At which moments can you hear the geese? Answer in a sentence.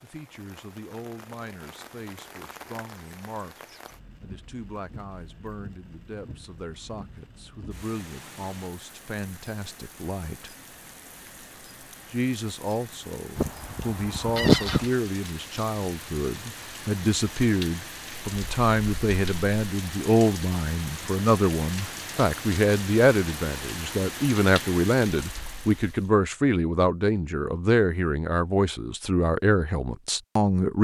You can hear the geese from 13.3 to 14.9 s.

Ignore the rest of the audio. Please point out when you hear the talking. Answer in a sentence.
The talking can be heard from 0.0 to 10.6 s and from 12.1 to 30.7 s.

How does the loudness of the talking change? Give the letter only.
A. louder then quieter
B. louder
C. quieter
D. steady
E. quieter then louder
B.